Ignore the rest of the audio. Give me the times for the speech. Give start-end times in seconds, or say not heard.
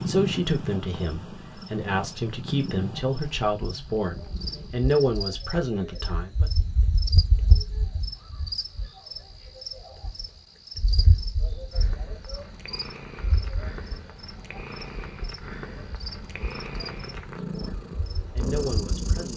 0.1-6.5, 17.5-19.3.